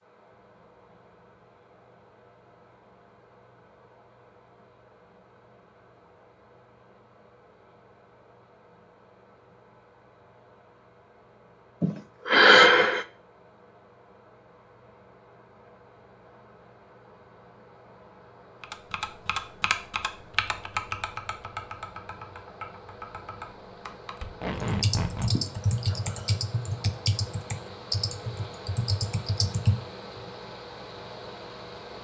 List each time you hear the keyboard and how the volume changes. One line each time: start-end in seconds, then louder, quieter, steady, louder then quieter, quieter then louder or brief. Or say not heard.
18.6-30.2 quieter then louder.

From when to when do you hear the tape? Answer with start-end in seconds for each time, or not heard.
24.2-25.4.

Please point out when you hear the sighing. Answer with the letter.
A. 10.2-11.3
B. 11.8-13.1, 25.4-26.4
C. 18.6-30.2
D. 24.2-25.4
B.